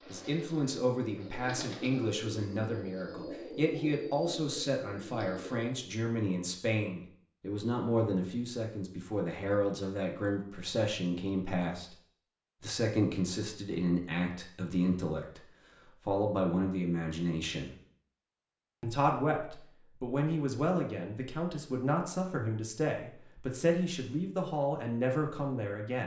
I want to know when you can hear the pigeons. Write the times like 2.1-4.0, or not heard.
0.0-5.8.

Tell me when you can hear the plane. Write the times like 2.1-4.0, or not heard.
not heard.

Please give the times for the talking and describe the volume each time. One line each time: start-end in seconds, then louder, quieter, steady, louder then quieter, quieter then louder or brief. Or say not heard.
0.1-11.9 steady
12.6-17.8 steady
18.8-26.0 steady.